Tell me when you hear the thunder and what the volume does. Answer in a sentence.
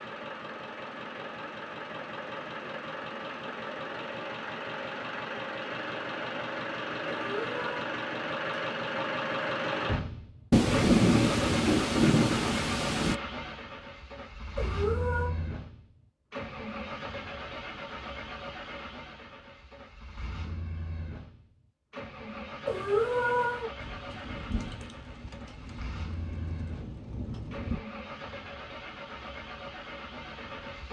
You can hear the thunder briefly from 10.5 to 13.2 s; and from 23.8 to 27.8 s, getting quieter then louder.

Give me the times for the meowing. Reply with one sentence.
The meowing can be heard from 7.1 to 7.9 s, from 14.6 to 15.3 s and from 22.6 to 23.7 s.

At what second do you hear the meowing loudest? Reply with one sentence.
The volume of the meowing peaks at 23 seconds.